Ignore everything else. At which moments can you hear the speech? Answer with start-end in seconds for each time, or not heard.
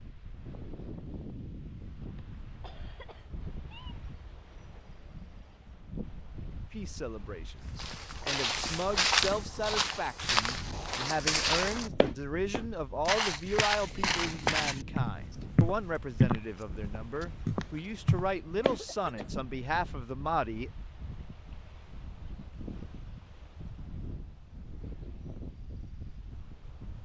6.7-20.7.